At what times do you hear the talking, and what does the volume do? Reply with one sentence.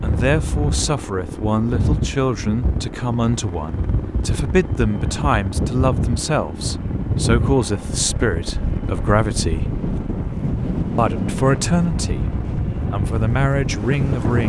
The talking can be heard from 0.0 to 9.7 s, at a steady volume; briefly from 10.9 to 12.2 s; and briefly from 12.9 to 14.4 s.